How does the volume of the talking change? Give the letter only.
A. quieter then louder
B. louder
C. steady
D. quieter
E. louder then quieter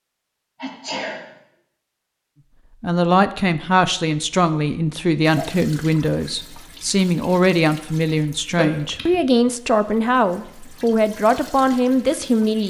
C.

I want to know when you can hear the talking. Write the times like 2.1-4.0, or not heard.
2.8-12.6.